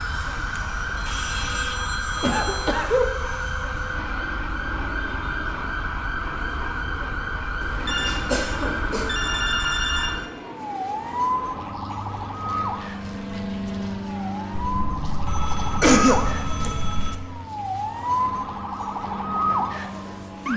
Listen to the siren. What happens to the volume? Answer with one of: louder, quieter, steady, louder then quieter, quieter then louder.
steady.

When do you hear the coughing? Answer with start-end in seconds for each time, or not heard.
1.1-3.0, 7.6-9.2, 15.8-16.7.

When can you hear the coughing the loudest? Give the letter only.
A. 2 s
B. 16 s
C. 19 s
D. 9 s
B.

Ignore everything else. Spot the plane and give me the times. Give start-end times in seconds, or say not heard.
0.0-20.5.